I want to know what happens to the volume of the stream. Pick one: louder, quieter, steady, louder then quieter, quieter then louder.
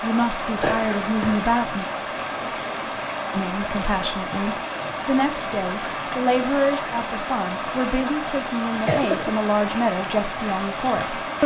steady.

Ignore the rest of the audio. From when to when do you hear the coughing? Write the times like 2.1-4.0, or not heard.
0.6-1.5, 8.8-9.3.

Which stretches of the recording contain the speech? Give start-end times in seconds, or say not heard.
0.0-1.9, 3.3-11.4.